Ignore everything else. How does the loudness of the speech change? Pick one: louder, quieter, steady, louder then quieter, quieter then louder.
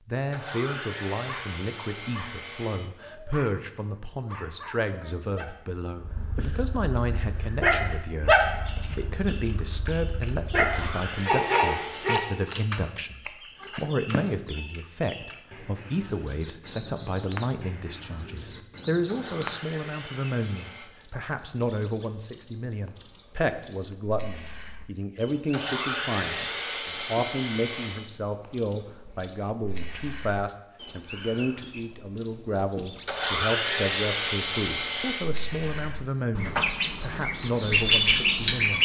steady.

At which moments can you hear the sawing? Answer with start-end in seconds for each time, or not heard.
0.3-2.9, 10.6-12.2, 19.1-20.9, 25.5-28.1, 33.0-35.3.